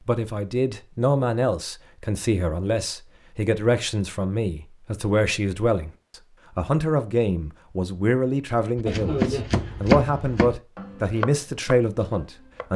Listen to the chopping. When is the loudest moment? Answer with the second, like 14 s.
10 s.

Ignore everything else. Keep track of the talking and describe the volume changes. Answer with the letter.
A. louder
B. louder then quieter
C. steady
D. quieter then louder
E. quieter
C.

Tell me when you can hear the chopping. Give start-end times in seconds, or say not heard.
8.8-12.7.